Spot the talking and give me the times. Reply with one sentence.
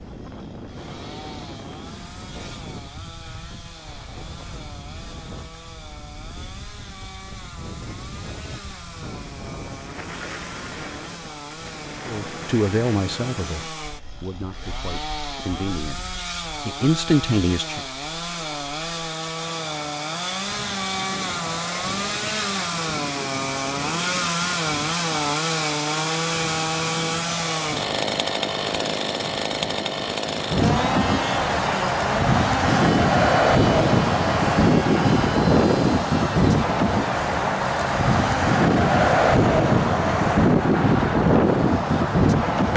You can hear the talking from 12.1 to 17.9 s.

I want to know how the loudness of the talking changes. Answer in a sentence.
The volume of the talking goes down, then up.